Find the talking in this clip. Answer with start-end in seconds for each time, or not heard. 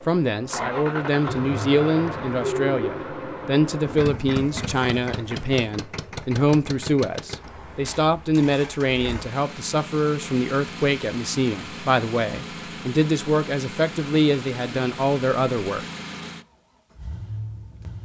0.0-15.8.